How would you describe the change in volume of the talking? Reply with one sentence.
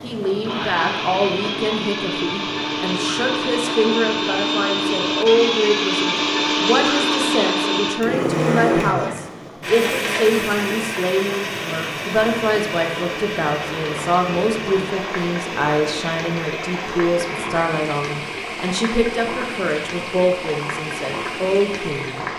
The loudness of the talking stays about the same.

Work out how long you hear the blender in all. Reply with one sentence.
The blender can be heard for 22 seconds in total.